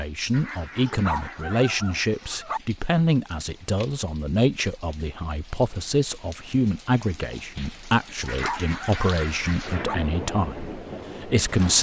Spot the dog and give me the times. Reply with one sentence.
You can hear the dog from 0.8 to 2.6 s and from 8.2 to 9.9 s.